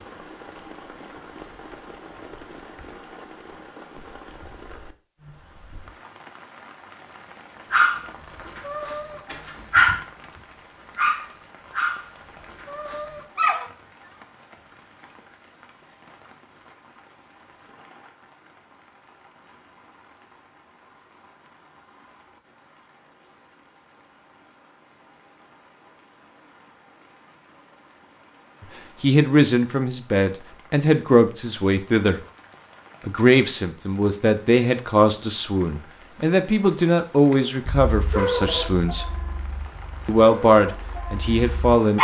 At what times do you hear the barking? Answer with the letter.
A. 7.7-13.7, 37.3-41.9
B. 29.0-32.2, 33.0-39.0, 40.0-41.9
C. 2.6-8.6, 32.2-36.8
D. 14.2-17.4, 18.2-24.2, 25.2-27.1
A.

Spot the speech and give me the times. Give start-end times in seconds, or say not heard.
29.0-32.2, 33.0-39.0, 40.0-41.9.